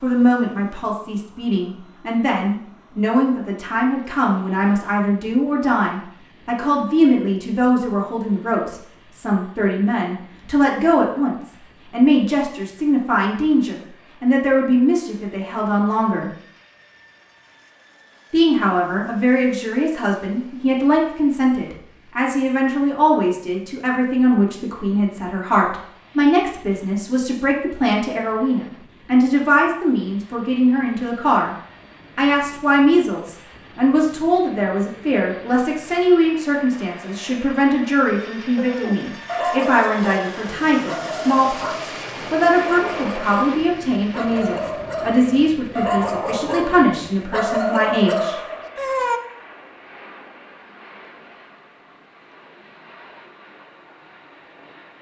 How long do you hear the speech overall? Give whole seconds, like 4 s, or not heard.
46 s.